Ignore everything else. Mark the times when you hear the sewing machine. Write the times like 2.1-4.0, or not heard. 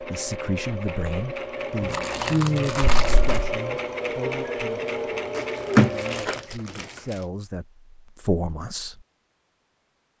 0.0-6.5.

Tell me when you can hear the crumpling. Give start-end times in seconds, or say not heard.
1.8-3.5, 5.3-7.2.